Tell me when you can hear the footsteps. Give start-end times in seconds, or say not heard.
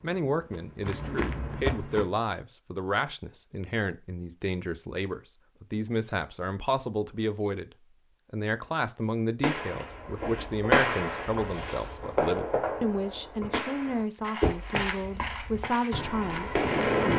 0.0-2.0, 14.2-17.1.